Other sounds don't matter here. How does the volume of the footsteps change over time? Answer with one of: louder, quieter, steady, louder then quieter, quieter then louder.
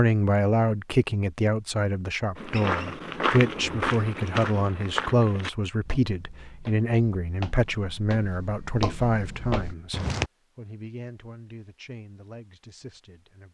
quieter then louder.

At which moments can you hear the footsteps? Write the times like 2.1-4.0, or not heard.
2.4-10.3.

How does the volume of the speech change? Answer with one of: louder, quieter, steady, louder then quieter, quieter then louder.
quieter.